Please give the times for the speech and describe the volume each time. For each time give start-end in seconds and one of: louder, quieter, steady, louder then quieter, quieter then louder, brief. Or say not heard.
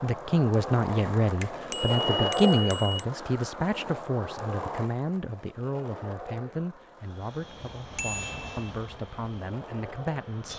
0.0-10.5 quieter.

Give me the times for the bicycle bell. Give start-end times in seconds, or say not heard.
1.4-3.0, 8.0-8.7.